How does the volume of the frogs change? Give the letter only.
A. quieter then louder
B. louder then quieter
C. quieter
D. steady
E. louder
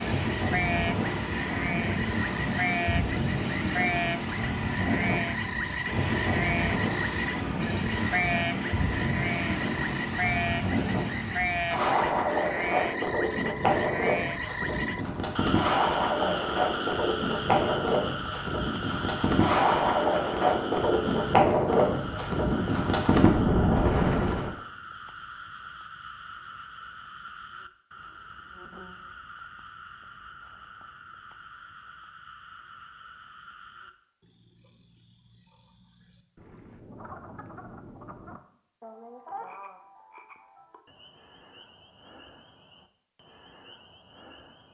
C.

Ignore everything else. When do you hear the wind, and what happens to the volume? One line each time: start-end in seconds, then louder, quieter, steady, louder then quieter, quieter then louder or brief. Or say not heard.
0.0-24.6 louder.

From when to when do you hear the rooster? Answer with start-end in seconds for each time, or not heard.
not heard.